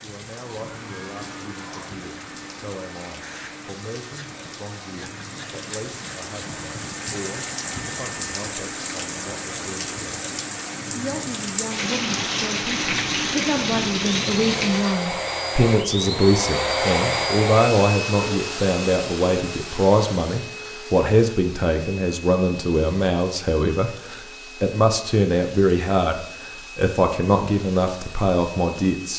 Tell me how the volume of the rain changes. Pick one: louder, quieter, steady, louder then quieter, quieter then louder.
louder.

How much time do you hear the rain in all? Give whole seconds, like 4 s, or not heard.
15 s.